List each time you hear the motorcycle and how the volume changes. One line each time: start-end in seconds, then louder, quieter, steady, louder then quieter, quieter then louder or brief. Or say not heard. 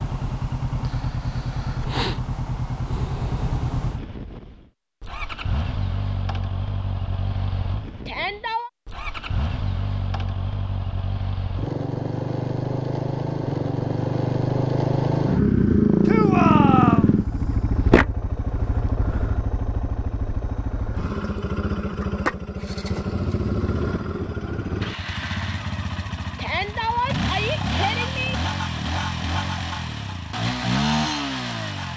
0.0-31.9 louder then quieter.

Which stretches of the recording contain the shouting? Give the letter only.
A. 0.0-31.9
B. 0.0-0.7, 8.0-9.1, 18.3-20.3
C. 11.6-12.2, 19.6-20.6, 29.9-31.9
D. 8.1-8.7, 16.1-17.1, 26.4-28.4
D.